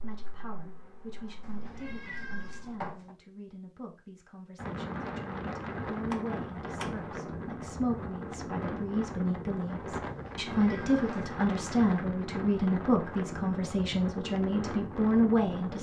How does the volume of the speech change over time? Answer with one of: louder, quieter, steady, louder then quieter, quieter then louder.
louder.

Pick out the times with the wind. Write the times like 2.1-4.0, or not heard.
4.5-15.7.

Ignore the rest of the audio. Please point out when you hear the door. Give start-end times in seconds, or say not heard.
6.0-7.2.